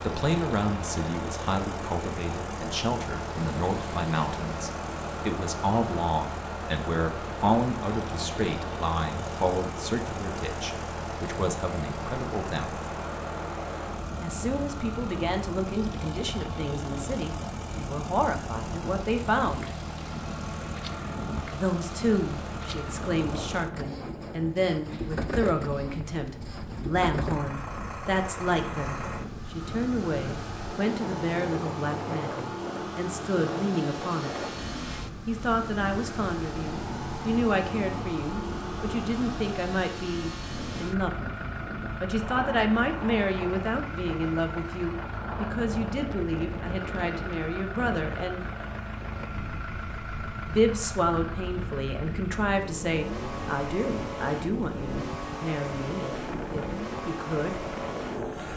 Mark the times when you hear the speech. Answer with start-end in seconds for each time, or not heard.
0.0-12.8, 14.2-19.7, 21.5-34.4, 35.2-48.4, 50.5-57.6.